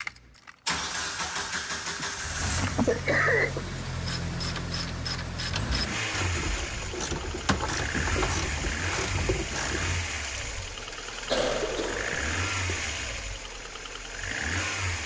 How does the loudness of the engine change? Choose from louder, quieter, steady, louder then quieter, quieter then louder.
steady.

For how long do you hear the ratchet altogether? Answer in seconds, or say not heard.
6 s.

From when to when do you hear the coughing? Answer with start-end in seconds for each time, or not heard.
1.9-3.6, 11.2-12.8.